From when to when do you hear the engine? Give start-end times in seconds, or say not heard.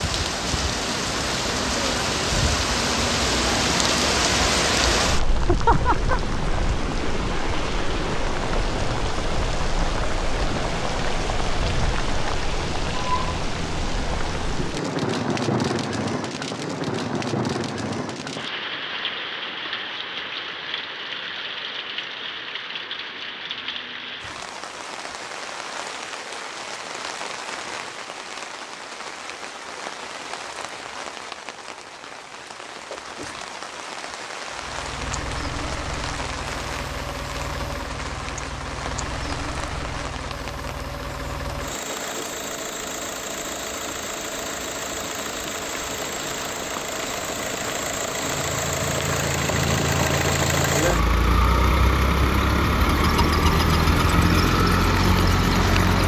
34.5-56.0.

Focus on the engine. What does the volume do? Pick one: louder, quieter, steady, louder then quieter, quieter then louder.
louder.